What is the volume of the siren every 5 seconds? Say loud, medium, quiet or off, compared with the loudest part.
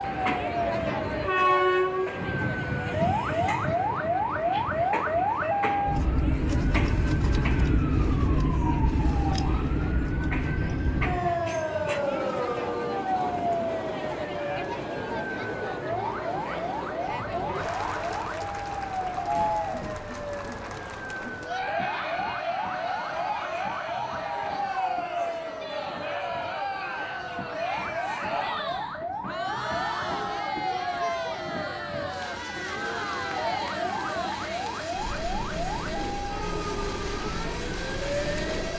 loud, loud, loud, medium, medium, medium, medium, medium.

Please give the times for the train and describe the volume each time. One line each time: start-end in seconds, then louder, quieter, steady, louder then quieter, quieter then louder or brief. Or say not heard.
0.0-38.7 quieter then louder.